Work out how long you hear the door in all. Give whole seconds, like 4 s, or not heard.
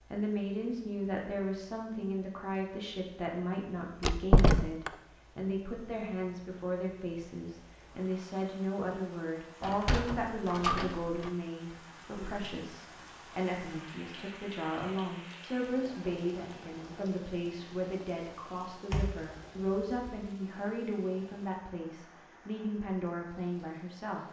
4 s.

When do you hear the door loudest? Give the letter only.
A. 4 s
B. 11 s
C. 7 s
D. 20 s
A.